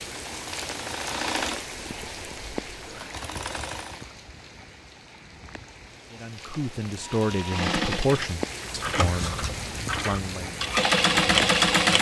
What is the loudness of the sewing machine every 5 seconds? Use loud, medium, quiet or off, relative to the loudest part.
quiet, medium, loud.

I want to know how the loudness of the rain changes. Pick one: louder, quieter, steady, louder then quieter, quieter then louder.
quieter then louder.